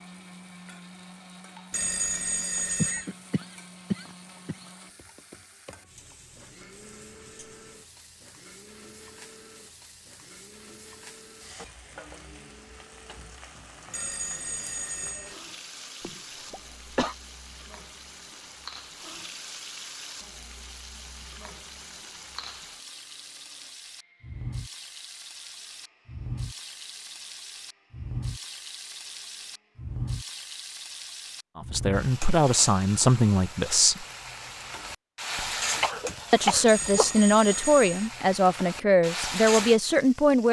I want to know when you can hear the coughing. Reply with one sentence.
You can hear the coughing from 2.8 to 4.7 s, from 16.0 to 17.1 s and from 35.8 to 37.2 s.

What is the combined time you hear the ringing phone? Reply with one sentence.
The ringing phone can be heard for 4 seconds in total.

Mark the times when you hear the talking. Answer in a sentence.
The talking can be heard from 31.6 to 34.0 s and from 36.3 to 40.4 s.